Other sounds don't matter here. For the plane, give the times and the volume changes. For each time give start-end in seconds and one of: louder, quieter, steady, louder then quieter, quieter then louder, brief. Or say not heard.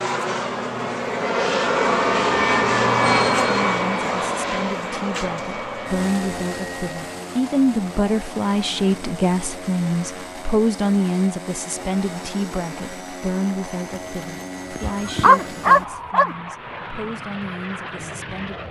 0.0-18.6 quieter.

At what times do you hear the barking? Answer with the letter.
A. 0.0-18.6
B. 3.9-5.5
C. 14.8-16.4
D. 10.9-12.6
C.